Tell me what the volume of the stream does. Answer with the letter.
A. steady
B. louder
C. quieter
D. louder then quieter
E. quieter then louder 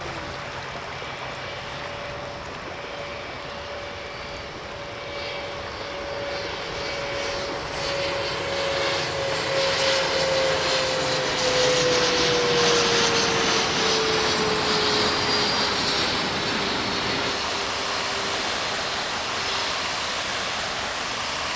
B.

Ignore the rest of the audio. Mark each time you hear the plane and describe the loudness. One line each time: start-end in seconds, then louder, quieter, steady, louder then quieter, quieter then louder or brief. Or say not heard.
0.0-21.5 louder then quieter.